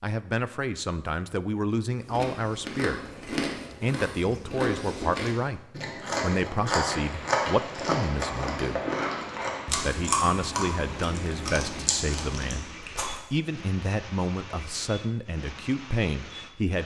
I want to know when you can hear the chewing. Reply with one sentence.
You can hear the chewing from 2.0 to 13.2 s.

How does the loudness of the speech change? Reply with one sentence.
The volume of the speech stays about the same.